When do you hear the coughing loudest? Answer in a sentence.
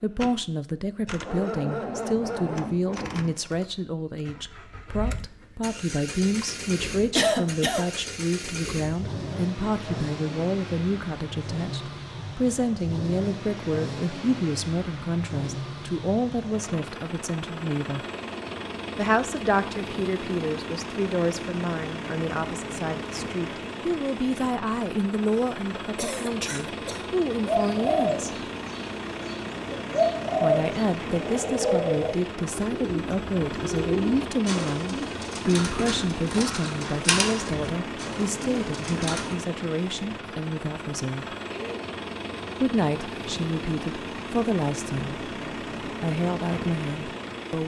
The loudest moment of the coughing is at 7 seconds.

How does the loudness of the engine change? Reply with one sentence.
The loudness of the engine stays about the same.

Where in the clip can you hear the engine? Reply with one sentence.
You can hear the engine from 0.0 to 47.6 s.